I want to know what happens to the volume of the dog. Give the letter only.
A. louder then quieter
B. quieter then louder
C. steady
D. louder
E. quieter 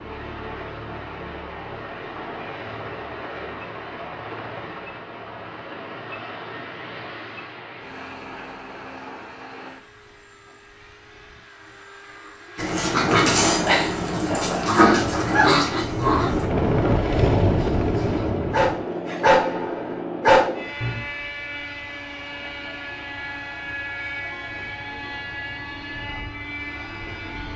B.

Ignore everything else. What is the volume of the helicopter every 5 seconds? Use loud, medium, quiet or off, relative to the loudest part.
medium, quiet, quiet, loud, medium, medium.